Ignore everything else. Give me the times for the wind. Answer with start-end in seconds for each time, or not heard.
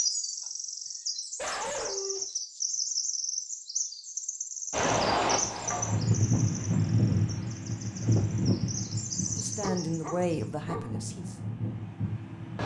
4.7-12.6.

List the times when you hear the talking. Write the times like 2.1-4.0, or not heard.
9.3-11.3.